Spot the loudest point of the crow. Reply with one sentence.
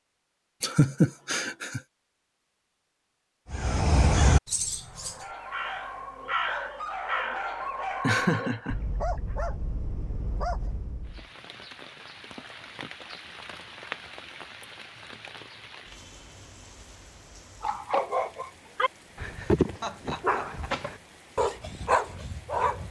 The volume of the crow peaks at 4 seconds.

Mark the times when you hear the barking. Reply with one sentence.
The barking can be heard from 4.8 to 11.2 s and from 17.6 to 22.8 s.